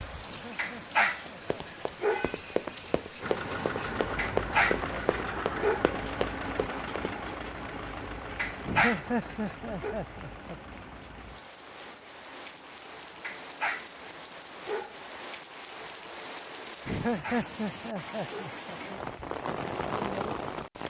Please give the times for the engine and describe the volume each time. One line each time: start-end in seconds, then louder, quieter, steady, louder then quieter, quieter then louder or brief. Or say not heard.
3.2-15.2 quieter.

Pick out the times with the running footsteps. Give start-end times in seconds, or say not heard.
1.2-7.2.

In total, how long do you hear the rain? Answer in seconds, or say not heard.
21 s.